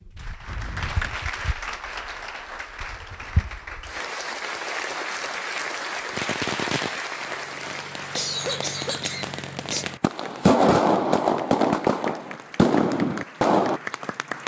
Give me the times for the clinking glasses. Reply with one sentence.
You can't hear the clinking glasses here.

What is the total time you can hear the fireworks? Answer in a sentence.
The fireworks can be heard for 8 seconds in total.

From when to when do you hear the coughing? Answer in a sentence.
The coughing can be heard from 0.5 to 1.2 s and from 8.2 to 9.8 s.